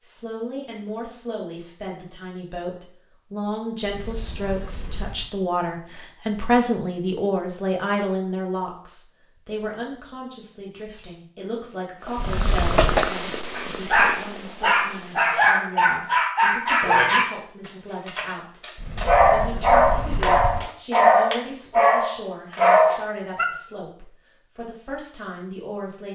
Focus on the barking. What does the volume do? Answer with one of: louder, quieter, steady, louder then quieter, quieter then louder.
steady.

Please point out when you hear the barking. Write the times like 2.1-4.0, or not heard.
13.6-23.4.